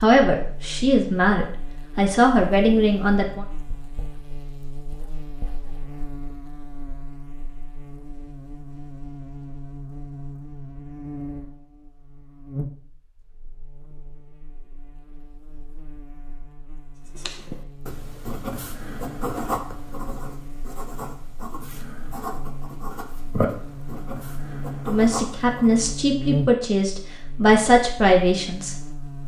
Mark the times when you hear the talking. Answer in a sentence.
The talking can be heard from 0.0 to 3.5 s and from 24.9 to 28.8 s.